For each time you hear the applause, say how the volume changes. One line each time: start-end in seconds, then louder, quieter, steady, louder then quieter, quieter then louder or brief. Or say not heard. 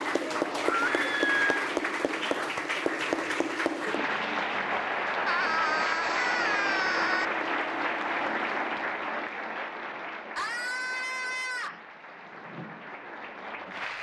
0.0-13.9 quieter.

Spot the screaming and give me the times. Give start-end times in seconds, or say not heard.
0.7-1.6, 5.2-7.2, 10.3-11.8.